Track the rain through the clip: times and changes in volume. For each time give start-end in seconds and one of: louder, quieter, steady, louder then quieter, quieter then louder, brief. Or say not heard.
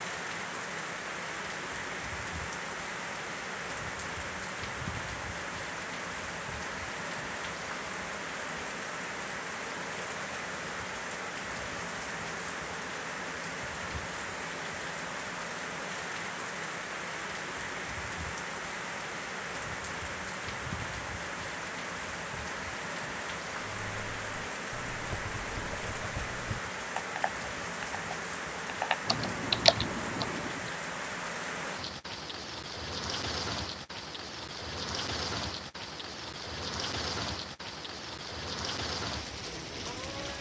0.0-40.3 steady.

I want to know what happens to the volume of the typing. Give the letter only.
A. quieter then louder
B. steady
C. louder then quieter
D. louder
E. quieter
D.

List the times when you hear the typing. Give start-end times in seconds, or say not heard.
23.8-30.7.